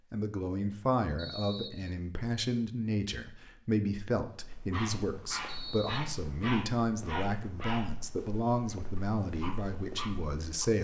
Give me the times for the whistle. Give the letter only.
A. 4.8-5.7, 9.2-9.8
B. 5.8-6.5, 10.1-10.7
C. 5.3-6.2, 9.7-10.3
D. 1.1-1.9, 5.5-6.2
D.